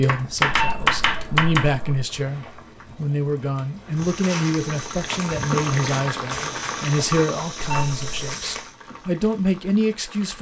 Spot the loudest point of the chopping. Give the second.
1 s.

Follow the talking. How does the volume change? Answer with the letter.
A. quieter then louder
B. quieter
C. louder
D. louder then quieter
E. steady
E.